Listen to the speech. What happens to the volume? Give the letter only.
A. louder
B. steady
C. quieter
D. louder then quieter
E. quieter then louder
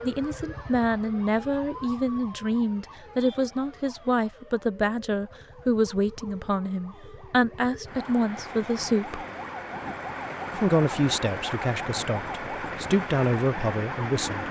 B.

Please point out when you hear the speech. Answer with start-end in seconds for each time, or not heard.
0.0-9.2, 10.5-14.4.